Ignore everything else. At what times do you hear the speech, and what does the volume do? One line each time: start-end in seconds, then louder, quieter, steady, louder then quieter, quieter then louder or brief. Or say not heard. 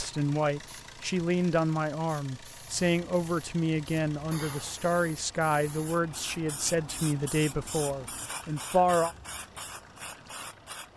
0.0-9.2 steady.